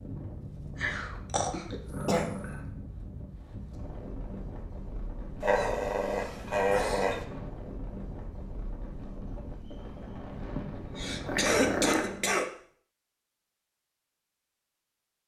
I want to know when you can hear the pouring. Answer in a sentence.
The pouring can't be heard in this clip.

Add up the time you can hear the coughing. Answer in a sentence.
You can hear the coughing for 4 seconds altogether.